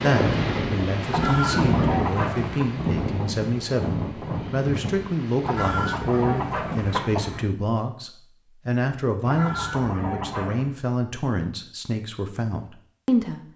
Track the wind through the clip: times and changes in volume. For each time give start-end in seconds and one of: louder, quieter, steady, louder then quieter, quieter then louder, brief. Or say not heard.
0.0-6.9 quieter.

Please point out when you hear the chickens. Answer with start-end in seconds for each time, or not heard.
1.1-2.6, 5.4-7.5, 9.2-10.8.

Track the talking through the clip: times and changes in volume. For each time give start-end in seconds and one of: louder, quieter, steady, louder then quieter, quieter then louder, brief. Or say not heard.
0.0-13.4 steady.